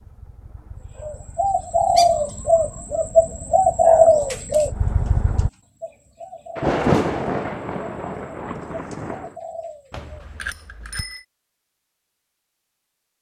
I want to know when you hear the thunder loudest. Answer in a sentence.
The volume of the thunder peaks at 7 seconds.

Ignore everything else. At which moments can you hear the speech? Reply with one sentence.
You can't hear the speech here.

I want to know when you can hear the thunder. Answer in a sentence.
The thunder can be heard from 6.5 to 9.3 s.